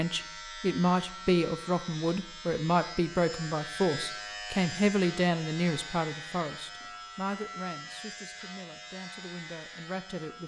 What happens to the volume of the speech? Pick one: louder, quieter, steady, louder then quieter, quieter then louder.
quieter.